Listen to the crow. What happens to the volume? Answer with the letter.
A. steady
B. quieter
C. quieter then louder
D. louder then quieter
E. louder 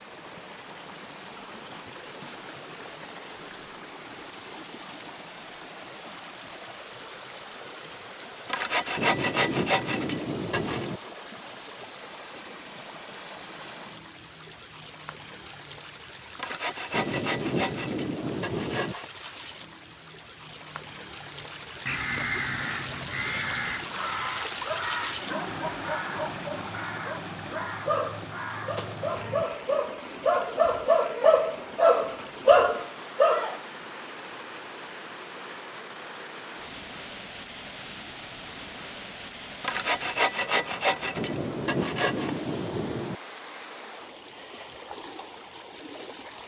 B.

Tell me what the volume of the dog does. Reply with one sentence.
The volume of the dog goes up.